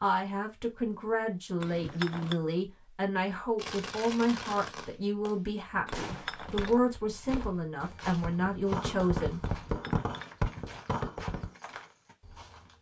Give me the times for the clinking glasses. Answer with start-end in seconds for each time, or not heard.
1.6-2.4, 5.8-6.8, 9.4-10.3.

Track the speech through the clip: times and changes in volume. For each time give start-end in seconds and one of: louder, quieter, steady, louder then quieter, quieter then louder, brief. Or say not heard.
0.0-9.4 steady.